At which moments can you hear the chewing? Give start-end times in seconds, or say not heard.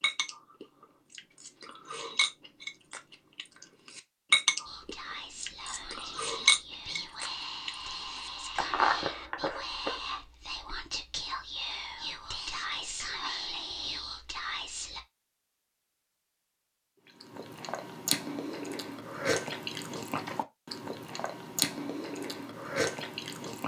0.0-10.0, 17.2-23.6.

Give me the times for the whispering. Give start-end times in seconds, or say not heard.
4.7-15.0.